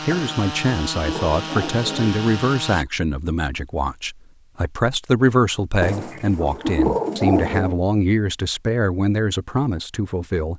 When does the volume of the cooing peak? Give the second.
7 s.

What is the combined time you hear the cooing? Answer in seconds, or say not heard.
4 s.